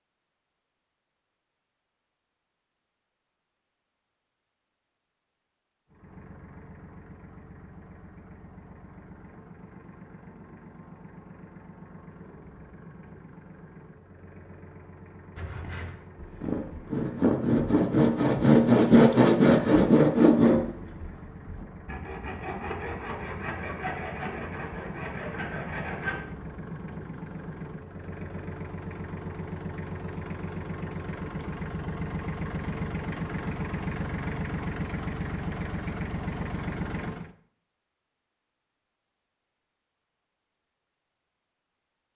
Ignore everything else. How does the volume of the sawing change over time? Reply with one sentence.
The volume of the sawing goes up, then down.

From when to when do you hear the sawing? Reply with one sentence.
You can hear the sawing from 15.3 to 26.2 s.